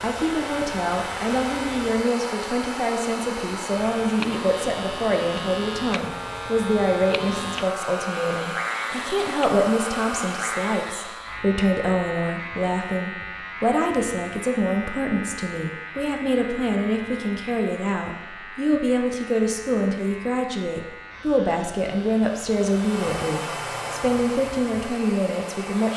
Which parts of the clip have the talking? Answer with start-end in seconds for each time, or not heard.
0.0-25.9.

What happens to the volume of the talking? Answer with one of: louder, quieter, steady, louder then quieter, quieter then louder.
steady.